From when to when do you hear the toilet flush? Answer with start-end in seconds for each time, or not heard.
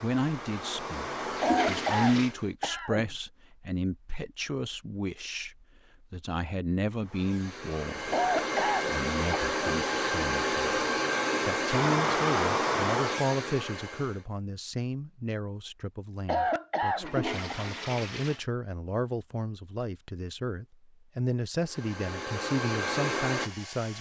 1.3-2.3, 16.9-18.4.